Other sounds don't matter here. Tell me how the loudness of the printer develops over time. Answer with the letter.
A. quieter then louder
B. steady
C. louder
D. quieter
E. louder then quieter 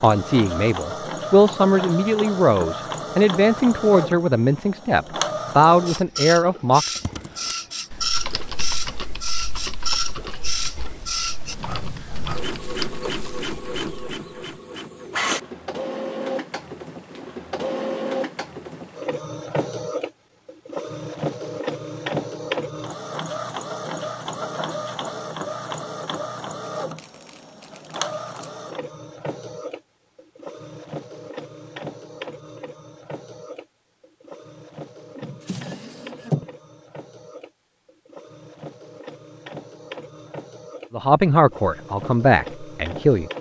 D.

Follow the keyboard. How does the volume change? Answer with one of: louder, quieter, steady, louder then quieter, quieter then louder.
quieter then louder.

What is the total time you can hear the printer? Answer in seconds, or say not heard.
43 s.